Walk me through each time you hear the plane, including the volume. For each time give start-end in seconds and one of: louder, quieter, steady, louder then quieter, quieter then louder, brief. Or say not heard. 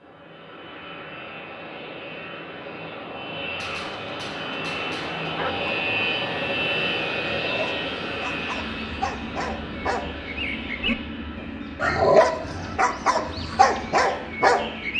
0.0-14.9 louder then quieter.